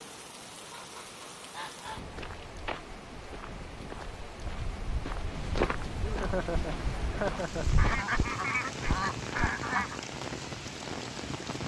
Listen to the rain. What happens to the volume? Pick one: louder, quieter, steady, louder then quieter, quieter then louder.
louder.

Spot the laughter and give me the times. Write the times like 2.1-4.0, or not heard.
6.0-7.7.